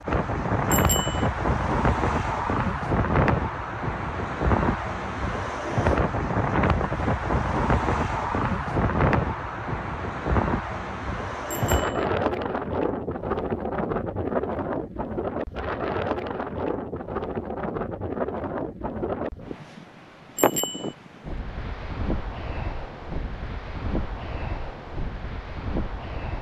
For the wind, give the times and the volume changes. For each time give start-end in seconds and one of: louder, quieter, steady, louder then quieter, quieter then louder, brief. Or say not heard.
0.0-26.3 quieter.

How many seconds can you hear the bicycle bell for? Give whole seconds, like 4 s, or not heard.
2 s.